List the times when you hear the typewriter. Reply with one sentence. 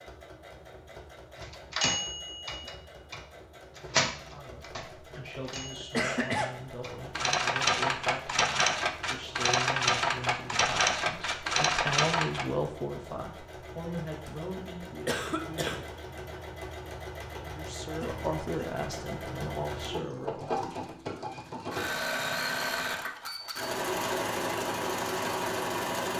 The typewriter can be heard from 1.4 to 12.4 s.